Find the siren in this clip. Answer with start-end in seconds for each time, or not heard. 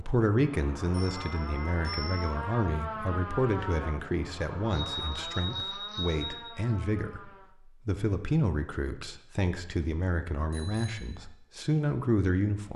0.0-7.5.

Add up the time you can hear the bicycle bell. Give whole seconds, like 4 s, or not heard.
4 s.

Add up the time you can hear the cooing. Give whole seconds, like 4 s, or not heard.
not heard.